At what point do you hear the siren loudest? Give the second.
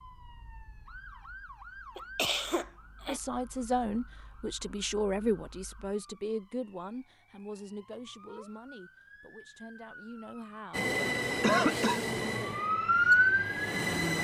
13 s.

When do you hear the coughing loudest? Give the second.
12 s.